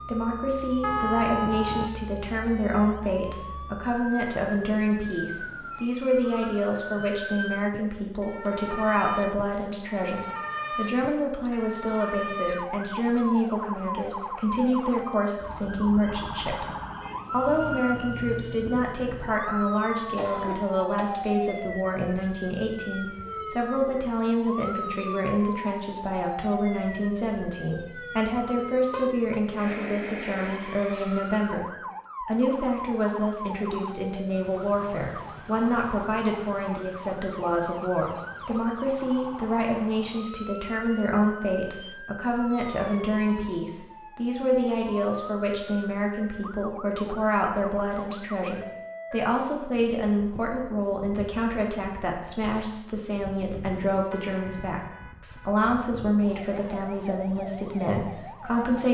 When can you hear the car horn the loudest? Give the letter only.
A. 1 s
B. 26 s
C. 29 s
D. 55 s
A.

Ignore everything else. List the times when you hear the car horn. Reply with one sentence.
You can hear the car horn from 0.8 to 1.9 s, from 28.4 to 29.4 s and from 54.1 to 55.5 s.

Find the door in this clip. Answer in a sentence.
You can't hear the door here.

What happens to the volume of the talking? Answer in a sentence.
The loudness of the talking stays about the same.